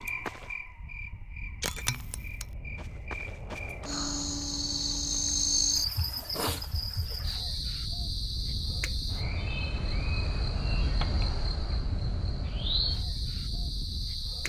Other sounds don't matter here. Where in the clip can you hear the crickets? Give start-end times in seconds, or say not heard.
0.0-14.4.